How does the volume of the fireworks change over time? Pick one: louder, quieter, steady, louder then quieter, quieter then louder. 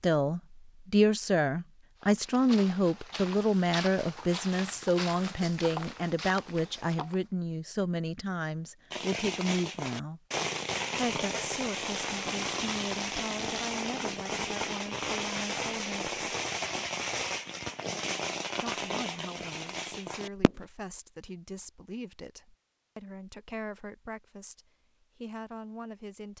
steady.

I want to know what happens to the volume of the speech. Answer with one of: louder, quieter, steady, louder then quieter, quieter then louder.
quieter.